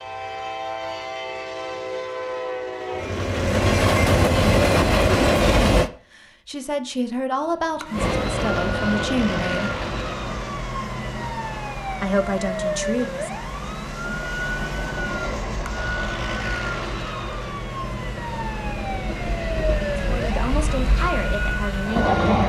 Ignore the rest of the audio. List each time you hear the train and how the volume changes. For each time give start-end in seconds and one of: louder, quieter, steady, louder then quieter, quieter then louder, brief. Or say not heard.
0.0-5.9 louder
7.9-22.4 quieter then louder.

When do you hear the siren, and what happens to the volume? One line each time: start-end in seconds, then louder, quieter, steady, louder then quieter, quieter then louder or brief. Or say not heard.
7.3-22.1 steady.